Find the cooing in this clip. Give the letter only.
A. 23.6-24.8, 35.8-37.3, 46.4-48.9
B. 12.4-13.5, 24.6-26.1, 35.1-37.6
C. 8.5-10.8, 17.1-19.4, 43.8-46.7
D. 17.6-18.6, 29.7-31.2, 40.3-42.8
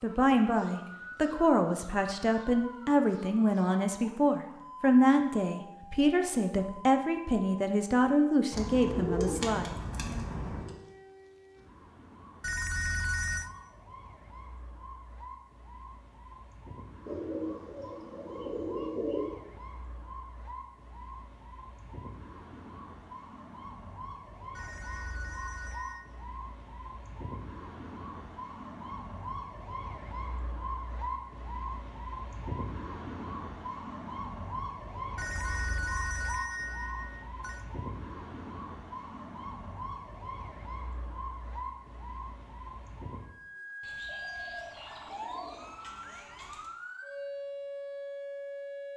C.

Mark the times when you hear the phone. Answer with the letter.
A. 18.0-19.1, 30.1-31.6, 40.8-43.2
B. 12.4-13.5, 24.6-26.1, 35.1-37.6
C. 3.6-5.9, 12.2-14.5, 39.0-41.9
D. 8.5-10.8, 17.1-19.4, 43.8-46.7
B.